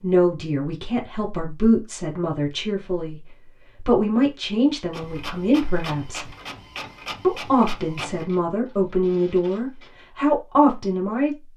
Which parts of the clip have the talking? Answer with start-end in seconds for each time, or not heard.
0.0-6.3, 7.2-11.5.